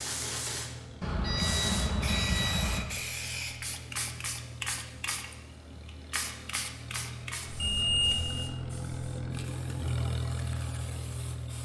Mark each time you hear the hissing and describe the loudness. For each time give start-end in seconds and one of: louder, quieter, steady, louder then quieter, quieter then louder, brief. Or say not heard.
0.0-11.5 quieter.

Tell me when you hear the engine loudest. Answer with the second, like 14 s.
10 s.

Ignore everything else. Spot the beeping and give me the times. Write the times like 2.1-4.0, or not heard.
1.0-2.9, 7.6-8.2.